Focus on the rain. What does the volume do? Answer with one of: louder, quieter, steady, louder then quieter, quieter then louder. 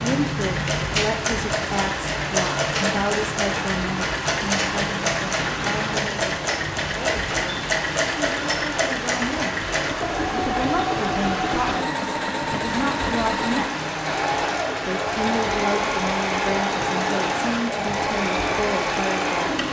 steady.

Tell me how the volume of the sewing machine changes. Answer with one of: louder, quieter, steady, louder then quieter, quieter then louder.
steady.